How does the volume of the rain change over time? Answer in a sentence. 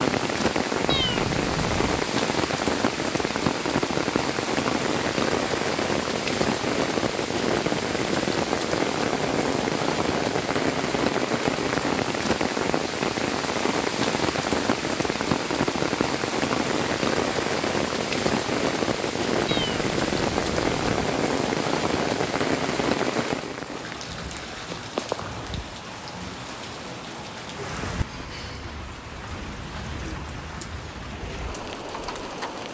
The loudness of the rain goes down.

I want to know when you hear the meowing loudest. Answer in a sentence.
The volume of the meowing peaks at 1 second.